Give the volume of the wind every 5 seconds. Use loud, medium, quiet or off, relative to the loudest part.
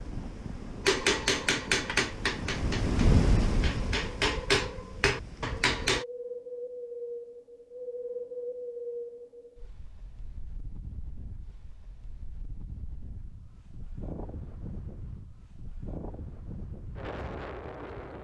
loud, medium, quiet, medium.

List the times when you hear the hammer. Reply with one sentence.
You can hear the hammer from 0.8 to 6.0 s.